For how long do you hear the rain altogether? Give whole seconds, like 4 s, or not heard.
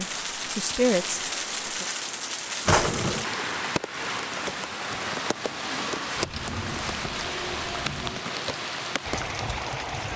10 s.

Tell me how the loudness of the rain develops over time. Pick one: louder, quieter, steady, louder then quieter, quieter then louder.
steady.